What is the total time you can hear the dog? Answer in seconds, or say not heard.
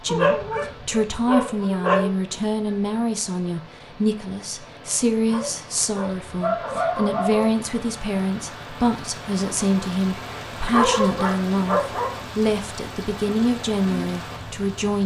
6 s.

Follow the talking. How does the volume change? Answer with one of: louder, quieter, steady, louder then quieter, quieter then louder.
steady.